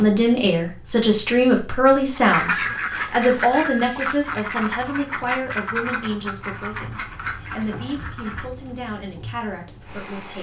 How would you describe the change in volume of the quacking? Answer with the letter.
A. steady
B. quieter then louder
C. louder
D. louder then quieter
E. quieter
E.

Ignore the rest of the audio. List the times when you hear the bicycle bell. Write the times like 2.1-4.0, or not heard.
2.3-4.1.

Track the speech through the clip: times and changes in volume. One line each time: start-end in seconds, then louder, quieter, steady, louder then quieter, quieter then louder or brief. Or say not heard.
0.0-10.3 quieter.